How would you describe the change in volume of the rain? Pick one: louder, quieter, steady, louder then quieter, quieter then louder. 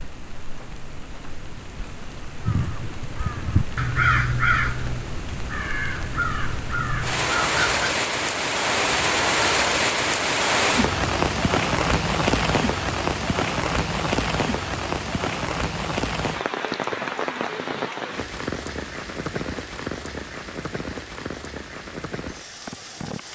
louder then quieter.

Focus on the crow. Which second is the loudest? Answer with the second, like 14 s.
4 s.